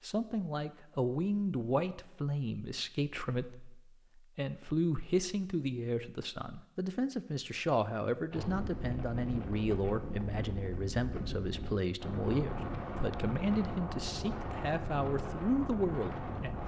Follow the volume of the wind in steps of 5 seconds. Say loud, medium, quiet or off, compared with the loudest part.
off, loud, loud, loud.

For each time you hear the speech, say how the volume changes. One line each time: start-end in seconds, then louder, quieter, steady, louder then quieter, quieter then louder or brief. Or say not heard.
0.0-16.6 steady.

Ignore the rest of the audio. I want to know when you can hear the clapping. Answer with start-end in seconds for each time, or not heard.
not heard.